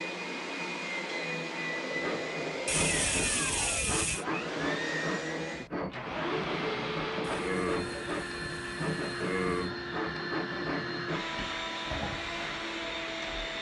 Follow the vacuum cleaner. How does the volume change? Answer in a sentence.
The volume of the vacuum cleaner stays about the same.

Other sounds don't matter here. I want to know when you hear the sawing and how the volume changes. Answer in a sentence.
You can hear the sawing from 1.9 to 11.2 s, at a steady volume.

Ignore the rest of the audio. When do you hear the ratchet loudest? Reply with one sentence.
The volume of the ratchet peaks at 3 seconds.